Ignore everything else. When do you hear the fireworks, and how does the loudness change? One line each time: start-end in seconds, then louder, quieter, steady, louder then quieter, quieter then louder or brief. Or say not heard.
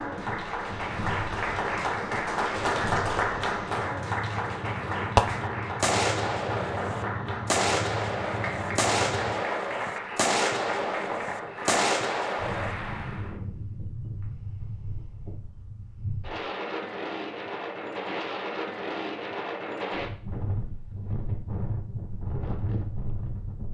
5.2-12.8 steady.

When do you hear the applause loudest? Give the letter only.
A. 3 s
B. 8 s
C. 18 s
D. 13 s
A.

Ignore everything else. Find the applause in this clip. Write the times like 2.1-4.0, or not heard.
0.0-13.3.